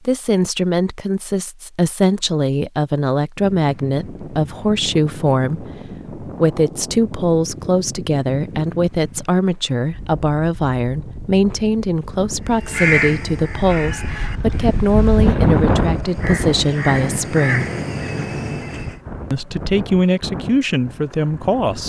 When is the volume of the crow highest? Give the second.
13 s.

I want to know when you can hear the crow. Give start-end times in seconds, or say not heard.
12.5-19.0.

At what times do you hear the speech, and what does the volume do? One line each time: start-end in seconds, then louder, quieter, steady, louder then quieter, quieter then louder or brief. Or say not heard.
0.1-17.7 steady
19.3-21.8 brief.